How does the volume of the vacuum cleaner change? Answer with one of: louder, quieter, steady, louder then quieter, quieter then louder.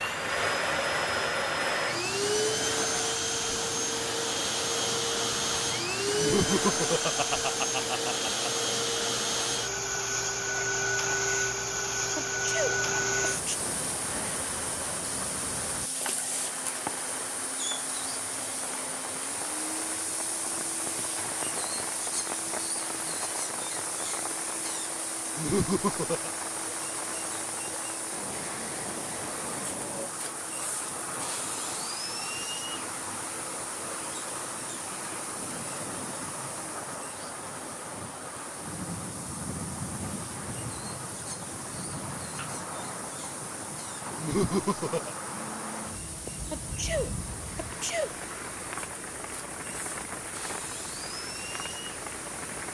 quieter.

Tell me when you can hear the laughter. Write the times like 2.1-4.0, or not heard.
6.2-8.7, 25.4-26.3, 44.2-45.1.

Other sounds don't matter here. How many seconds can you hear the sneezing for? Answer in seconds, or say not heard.
3 s.